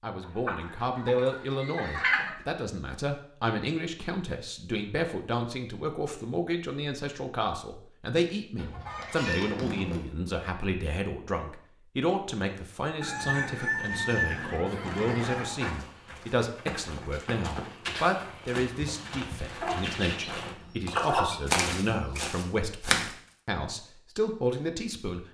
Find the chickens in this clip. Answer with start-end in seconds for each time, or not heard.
0.2-2.3, 8.6-10.1, 13.0-15.4, 19.6-22.3.